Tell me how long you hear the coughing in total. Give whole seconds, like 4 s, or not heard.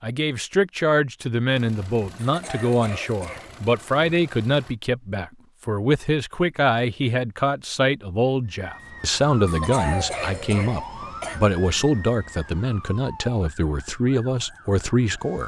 3 s.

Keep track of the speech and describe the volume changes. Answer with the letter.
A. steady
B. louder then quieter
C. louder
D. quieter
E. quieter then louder
A.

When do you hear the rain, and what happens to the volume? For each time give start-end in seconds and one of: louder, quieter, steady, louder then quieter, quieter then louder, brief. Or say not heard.
not heard.